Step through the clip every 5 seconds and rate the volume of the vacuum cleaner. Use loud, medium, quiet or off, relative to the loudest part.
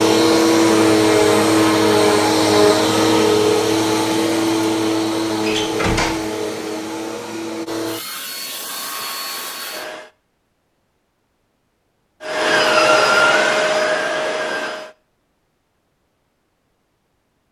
loud, medium, loud, off.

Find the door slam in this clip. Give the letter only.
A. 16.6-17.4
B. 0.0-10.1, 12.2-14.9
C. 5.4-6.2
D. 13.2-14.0
C.